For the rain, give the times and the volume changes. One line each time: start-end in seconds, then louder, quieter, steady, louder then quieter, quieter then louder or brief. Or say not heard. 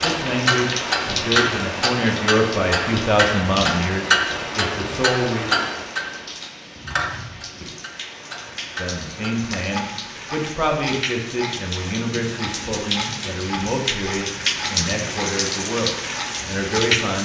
0.0-17.2 quieter then louder.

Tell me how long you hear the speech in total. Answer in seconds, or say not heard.
14 s.